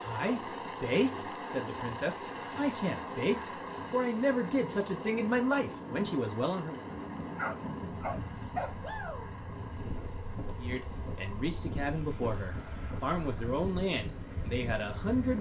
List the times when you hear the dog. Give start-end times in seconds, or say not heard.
6.8-8.8.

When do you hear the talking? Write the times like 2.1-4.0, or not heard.
0.0-6.8, 10.6-15.3.